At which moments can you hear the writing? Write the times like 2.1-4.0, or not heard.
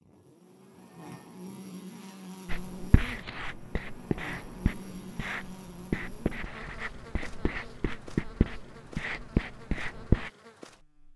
2.5-10.3.